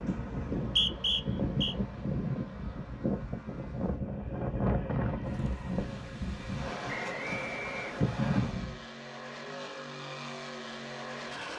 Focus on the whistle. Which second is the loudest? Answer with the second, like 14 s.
1 s.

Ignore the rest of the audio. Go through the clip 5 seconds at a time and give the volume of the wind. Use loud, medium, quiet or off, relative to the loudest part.
loud, loud, off.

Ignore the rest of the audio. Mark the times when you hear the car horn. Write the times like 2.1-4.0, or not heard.
not heard.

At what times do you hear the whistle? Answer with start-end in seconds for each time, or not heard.
0.6-1.8, 6.8-8.4.